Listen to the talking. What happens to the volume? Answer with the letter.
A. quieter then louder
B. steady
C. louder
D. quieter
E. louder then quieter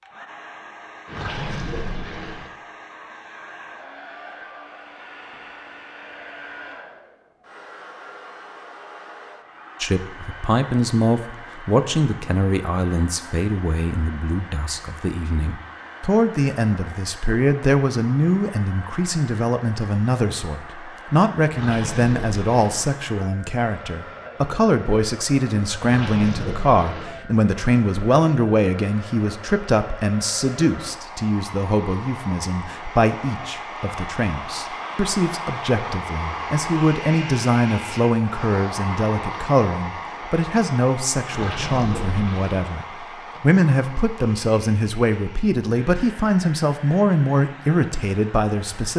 B.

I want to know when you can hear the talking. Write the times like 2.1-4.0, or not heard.
9.8-48.9.